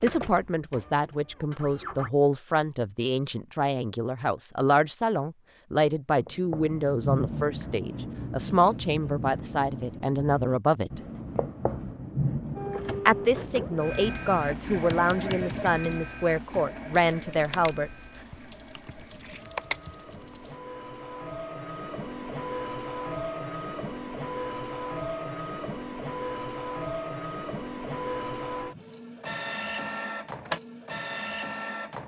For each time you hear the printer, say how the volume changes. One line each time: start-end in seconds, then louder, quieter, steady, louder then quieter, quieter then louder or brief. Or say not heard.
0.0-2.1 brief
12.6-32.0 quieter then louder.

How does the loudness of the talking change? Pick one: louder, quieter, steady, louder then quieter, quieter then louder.
steady.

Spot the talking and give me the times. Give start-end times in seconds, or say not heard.
0.0-11.0, 13.1-18.1.